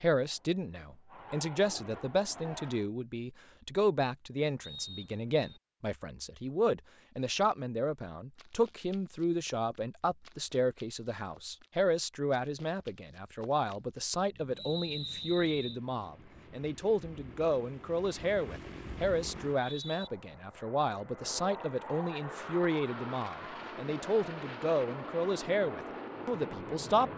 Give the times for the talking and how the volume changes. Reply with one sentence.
The talking can be heard from 0.0 to 27.1 s, at a steady volume.